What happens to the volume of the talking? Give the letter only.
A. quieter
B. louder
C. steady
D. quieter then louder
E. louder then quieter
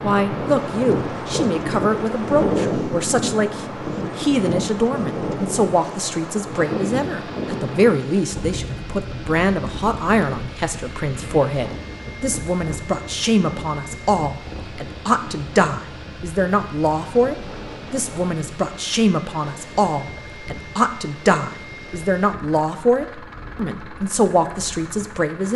C.